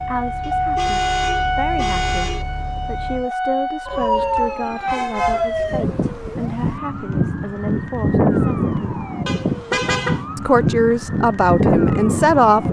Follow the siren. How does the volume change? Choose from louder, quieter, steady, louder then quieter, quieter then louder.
steady.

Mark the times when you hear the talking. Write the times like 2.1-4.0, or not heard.
0.0-9.0, 10.3-12.6.